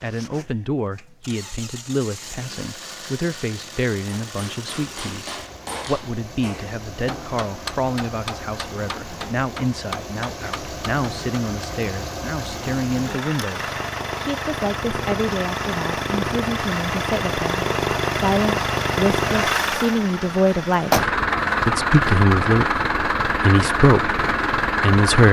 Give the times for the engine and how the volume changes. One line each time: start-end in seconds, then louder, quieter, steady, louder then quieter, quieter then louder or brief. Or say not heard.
0.0-25.2 louder.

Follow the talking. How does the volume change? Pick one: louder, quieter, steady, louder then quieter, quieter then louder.
louder.